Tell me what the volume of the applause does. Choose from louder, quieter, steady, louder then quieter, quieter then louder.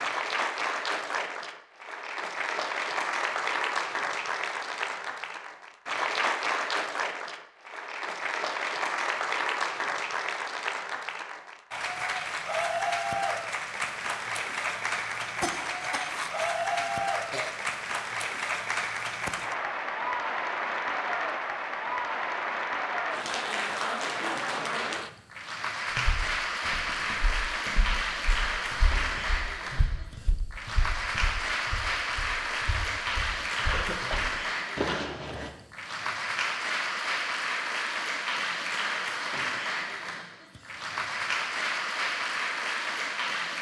steady.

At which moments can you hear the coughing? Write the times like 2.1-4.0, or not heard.
15.4-17.5, 33.6-35.0.